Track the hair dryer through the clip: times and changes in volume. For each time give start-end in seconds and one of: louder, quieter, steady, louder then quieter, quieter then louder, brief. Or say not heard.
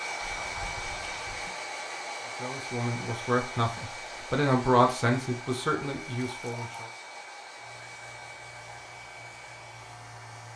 0.0-10.5 quieter.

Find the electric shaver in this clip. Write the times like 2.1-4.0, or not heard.
7.5-10.5.